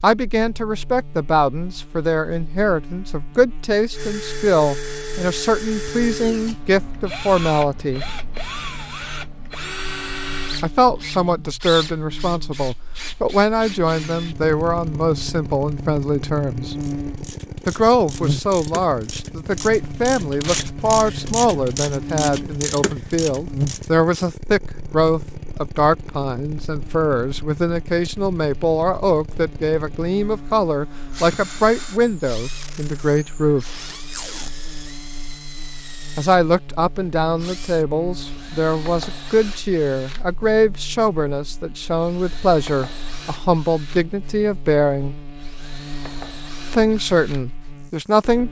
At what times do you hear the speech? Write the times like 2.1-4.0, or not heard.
0.0-8.1, 10.6-16.8, 17.6-33.6, 36.1-45.1, 46.7-48.4.